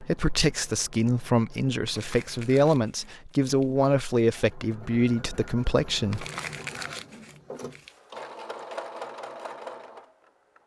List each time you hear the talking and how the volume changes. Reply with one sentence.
The talking can be heard from 0.0 to 6.2 s, at a steady volume.